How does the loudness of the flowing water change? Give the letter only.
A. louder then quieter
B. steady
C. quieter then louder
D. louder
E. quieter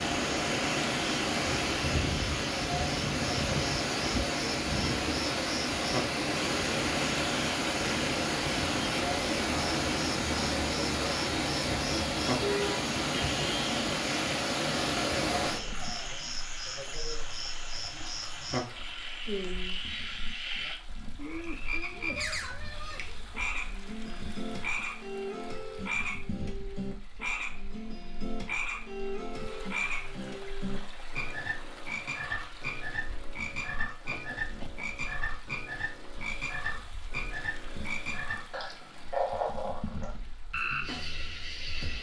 E.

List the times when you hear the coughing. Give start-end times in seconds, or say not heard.
34.1-34.9.